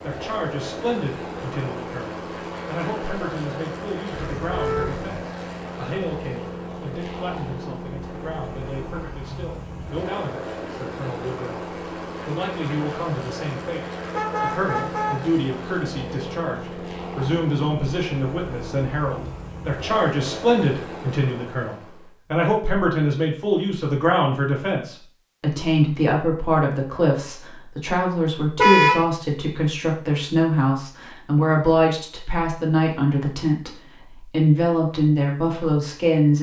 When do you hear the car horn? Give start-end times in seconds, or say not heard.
4.3-5.1, 14.1-15.2, 28.6-29.1.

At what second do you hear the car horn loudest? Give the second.
29 s.